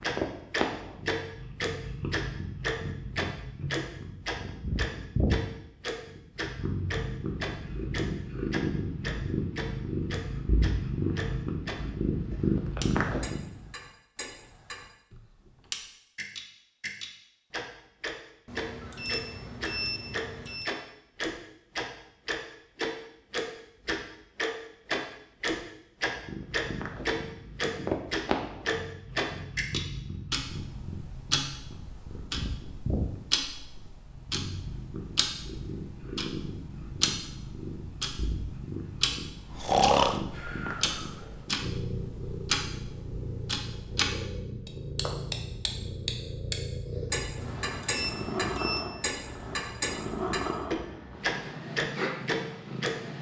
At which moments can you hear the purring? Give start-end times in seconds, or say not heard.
0.0-13.7, 26.1-53.1.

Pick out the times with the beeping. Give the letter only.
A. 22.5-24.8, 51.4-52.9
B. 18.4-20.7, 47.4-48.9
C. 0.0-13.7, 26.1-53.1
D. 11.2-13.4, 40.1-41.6
B.